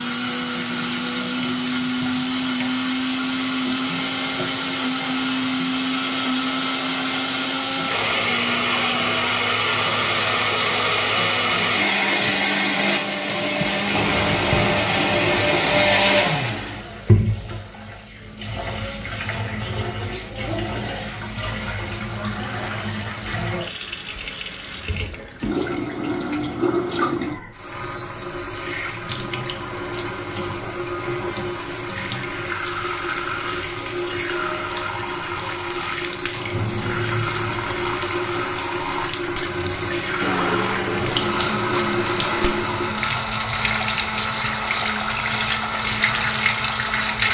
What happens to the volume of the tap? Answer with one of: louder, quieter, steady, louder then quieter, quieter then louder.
louder.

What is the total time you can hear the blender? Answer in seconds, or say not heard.
24 s.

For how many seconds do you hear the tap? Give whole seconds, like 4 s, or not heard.
47 s.